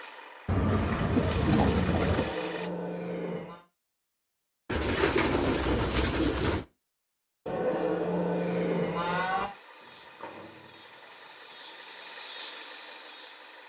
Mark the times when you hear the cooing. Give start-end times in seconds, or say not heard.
0.5-2.4, 4.7-6.7, 9.8-11.8.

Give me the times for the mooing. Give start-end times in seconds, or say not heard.
2.0-3.6, 7.5-9.4.